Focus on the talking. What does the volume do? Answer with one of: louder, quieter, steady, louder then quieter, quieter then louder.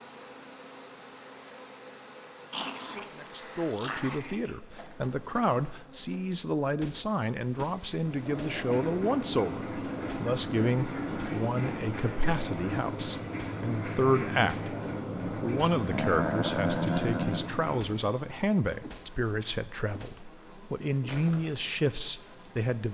steady.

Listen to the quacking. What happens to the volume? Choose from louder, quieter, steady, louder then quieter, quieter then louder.
steady.